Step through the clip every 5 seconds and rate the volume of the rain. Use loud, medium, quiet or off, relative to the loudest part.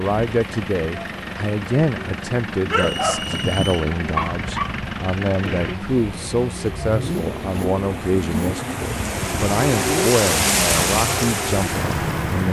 quiet, medium, loud.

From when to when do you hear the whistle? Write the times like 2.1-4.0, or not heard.
2.8-3.9.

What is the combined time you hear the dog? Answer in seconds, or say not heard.
2 s.